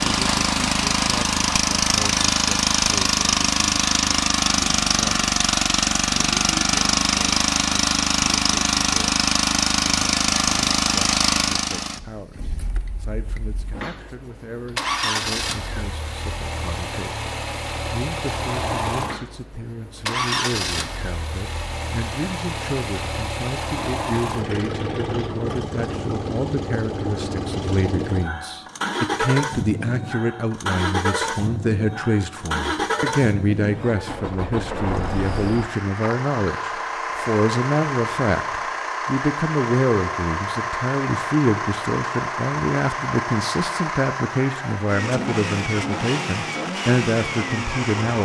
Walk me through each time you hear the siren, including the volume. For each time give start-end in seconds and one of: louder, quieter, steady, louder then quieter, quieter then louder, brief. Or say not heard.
not heard.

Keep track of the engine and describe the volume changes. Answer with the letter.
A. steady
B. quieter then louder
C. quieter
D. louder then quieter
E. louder
C.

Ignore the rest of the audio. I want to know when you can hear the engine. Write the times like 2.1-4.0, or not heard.
0.0-48.2.